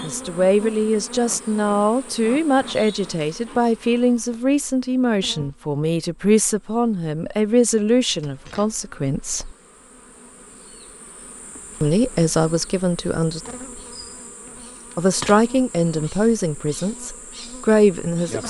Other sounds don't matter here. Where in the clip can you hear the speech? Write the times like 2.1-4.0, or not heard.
0.0-9.6, 11.8-13.4, 14.9-18.4.